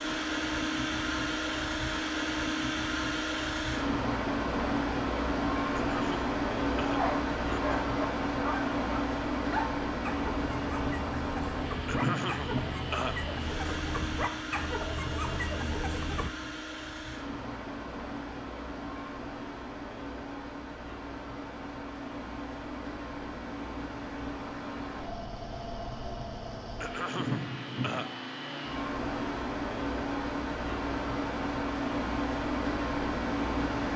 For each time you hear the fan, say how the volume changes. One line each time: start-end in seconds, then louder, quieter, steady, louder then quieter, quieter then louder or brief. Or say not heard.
0.0-33.9 quieter then louder.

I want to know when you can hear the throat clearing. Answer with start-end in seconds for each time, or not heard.
5.9-7.6, 11.8-13.8, 26.8-28.1.